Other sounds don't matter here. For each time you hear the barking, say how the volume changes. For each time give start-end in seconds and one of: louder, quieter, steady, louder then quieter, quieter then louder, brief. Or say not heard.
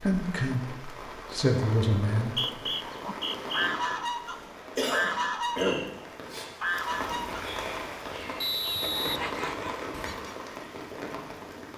not heard.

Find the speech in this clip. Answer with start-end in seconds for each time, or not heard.
0.0-2.6.